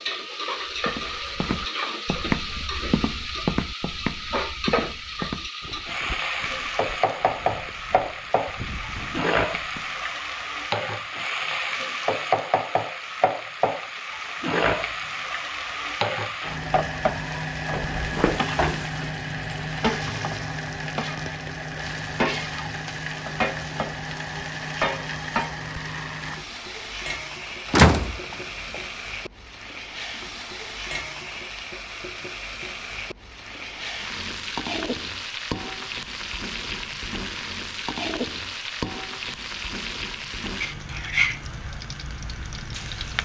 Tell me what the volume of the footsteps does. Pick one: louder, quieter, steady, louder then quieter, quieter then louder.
quieter then louder.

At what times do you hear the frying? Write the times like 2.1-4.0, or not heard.
0.0-43.2.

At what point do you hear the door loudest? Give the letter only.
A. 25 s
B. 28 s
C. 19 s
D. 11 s
B.